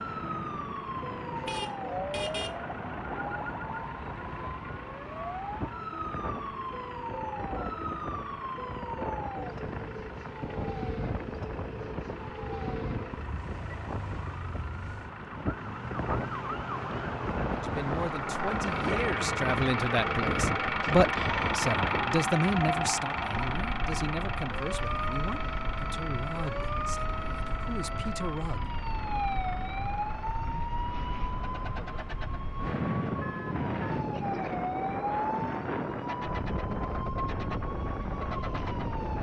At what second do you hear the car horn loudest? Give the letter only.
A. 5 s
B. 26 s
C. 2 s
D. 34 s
C.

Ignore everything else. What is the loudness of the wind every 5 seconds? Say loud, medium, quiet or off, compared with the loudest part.
medium, medium, medium, loud, loud, medium, loud, loud.